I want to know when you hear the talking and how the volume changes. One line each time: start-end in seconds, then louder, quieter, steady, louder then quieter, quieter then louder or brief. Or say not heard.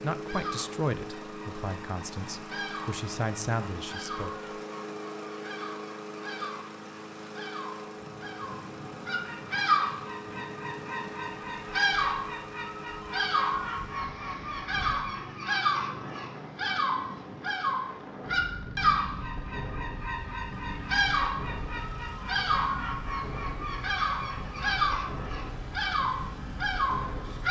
0.0-4.3 quieter then louder.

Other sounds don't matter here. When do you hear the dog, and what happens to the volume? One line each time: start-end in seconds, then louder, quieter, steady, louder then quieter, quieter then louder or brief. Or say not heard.
not heard.